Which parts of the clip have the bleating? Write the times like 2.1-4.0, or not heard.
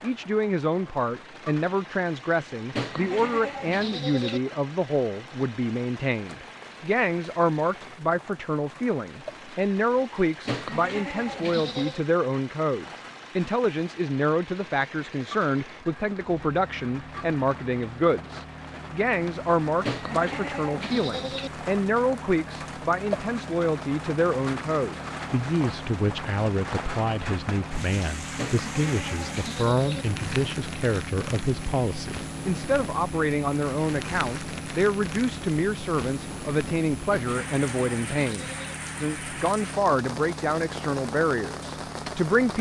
2.7-4.4, 10.4-12.0, 19.8-21.5, 28.4-30.1, 37.0-38.8.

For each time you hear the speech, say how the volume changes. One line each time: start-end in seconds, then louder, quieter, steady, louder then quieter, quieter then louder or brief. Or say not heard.
0.0-42.5 steady.